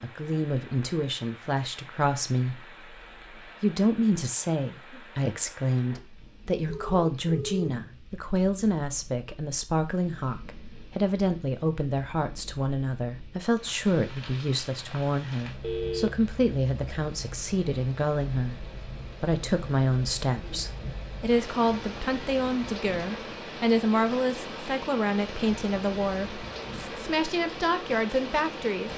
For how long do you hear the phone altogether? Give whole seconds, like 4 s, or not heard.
2 s.